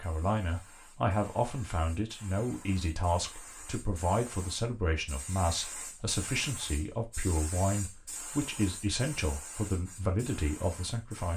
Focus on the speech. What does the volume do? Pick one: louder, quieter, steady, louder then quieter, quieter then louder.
steady.